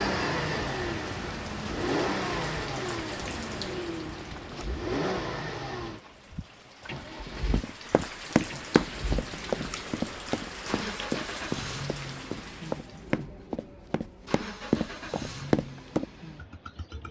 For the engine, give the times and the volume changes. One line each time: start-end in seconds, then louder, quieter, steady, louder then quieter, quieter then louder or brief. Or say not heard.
0.0-17.0 quieter.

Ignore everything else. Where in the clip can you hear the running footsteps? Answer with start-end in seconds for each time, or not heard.
7.5-16.1.